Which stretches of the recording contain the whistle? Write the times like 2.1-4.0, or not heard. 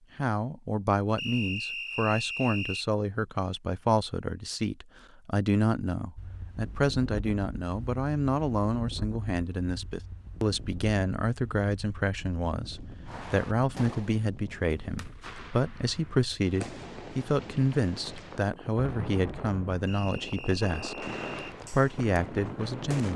1.1-2.9, 19.9-21.6.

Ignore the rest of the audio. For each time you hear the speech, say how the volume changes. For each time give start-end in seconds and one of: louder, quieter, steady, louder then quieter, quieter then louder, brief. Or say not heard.
0.1-23.1 steady.